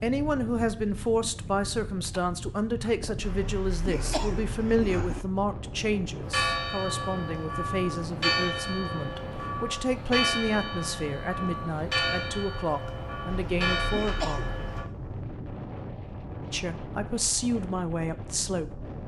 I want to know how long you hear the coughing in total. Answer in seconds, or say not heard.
4 s.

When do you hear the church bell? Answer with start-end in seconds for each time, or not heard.
6.2-14.8.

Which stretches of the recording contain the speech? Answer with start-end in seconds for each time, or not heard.
0.0-14.4, 16.5-18.8.